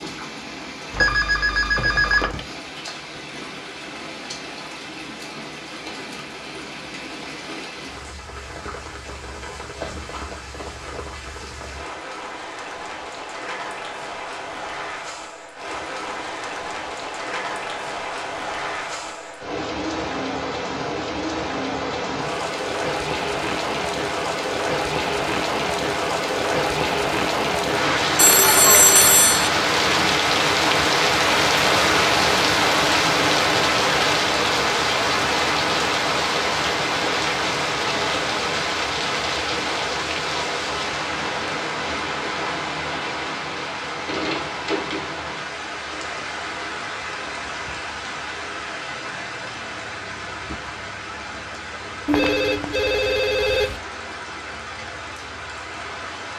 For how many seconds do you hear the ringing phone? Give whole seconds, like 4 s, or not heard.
5 s.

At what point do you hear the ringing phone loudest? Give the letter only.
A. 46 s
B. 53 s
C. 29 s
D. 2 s
C.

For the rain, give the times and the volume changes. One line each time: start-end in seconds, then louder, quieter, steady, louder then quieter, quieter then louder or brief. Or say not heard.
0.0-56.3 louder then quieter.